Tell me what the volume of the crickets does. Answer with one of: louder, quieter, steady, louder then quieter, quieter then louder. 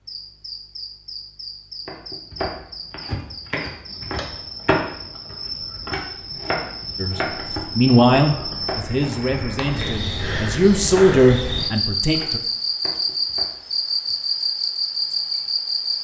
louder.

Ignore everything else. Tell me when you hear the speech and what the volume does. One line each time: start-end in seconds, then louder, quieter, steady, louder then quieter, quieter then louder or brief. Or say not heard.
7.0-12.4 quieter then louder.